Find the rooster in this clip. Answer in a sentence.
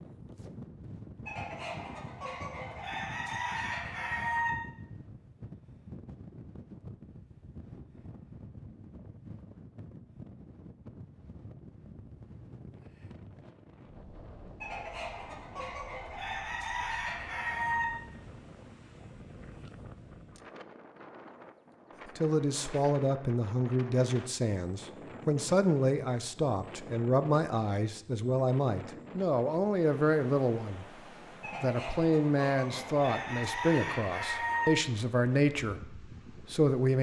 The rooster can be heard from 1.2 to 4.5 s, from 14.6 to 17.9 s and from 31.4 to 34.7 s.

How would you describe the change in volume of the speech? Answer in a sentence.
The loudness of the speech stays about the same.